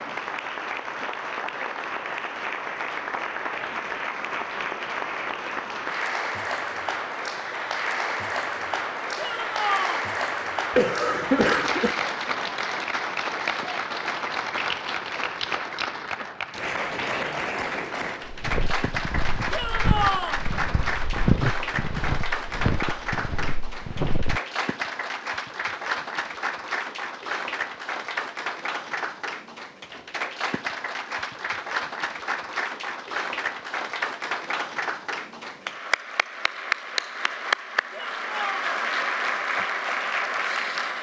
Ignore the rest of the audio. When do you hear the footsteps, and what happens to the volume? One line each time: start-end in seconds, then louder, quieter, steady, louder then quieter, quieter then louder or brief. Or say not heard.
18.2-24.4 louder then quieter.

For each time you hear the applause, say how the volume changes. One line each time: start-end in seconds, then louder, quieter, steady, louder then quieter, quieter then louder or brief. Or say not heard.
0.0-40.9 steady.